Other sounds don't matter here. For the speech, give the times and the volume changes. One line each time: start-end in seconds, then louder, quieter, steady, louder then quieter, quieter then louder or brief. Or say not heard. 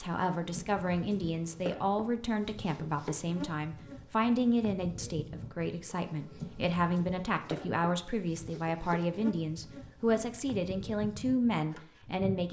0.0-12.4 steady.